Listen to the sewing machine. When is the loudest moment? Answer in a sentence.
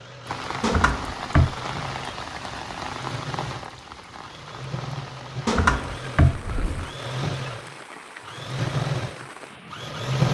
The volume of the sewing machine peaks at 10 seconds.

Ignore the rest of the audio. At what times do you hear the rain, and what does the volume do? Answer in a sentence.
The rain can be heard from 0.1 to 9.9 s, getting quieter.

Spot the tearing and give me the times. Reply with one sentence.
The tearing can't be heard in this clip.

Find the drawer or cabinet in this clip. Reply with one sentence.
The drawer or cabinet can be heard from 0.6 to 1.6 s and from 5.5 to 6.9 s.